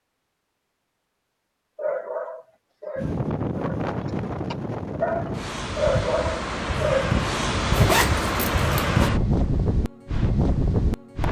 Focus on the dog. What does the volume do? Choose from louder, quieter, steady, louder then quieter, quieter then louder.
quieter then louder.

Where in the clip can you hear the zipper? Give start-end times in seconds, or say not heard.
7.7-9.0.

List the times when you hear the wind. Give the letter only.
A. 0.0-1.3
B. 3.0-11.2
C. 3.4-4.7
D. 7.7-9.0
B.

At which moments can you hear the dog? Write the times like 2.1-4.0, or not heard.
1.8-7.2.